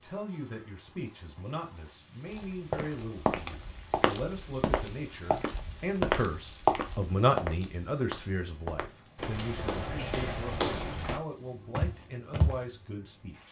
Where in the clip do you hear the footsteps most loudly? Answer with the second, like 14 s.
7 s.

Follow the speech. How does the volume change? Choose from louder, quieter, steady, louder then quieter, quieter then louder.
louder then quieter.